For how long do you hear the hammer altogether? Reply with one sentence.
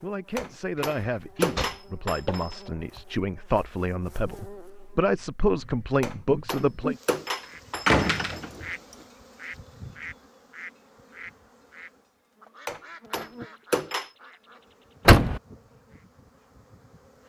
You can hear the hammer for 6 seconds altogether.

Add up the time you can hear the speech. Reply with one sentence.
The speech can be heard for 7 seconds in total.